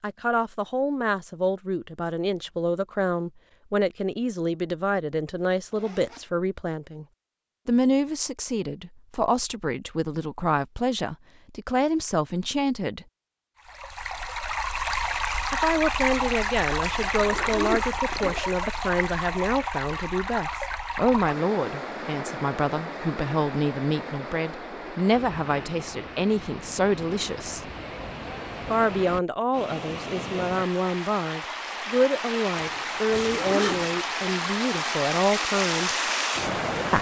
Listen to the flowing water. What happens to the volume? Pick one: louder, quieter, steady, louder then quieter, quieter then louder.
quieter then louder.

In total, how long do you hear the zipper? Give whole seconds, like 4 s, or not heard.
4 s.